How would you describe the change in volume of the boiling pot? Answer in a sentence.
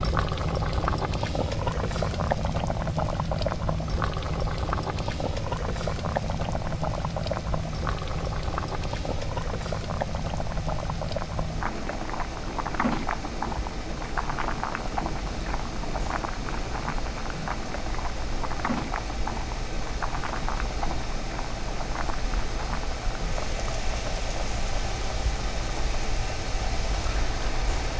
The loudness of the boiling pot goes down.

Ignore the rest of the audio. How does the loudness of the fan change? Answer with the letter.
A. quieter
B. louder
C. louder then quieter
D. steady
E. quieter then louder
B.